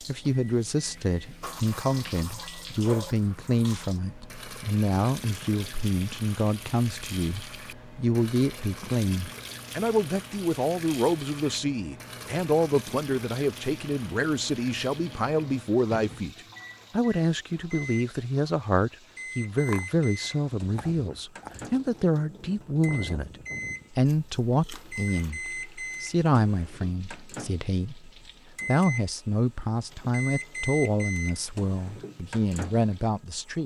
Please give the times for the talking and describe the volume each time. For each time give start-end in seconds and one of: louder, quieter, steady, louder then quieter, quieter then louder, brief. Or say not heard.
0.1-23.3 steady
23.9-33.6 steady.